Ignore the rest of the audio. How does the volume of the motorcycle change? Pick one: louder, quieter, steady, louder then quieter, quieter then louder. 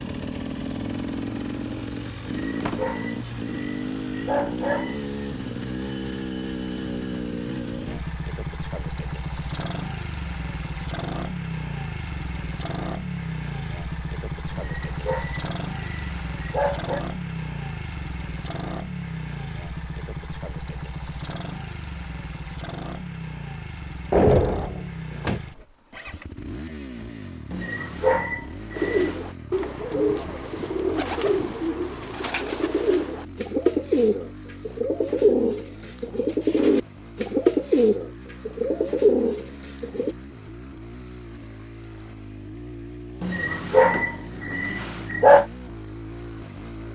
quieter.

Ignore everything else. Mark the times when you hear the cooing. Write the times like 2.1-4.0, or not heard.
28.7-40.1.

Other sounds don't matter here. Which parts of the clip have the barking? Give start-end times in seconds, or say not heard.
2.2-5.0, 14.5-17.0, 27.5-29.2, 43.2-45.5.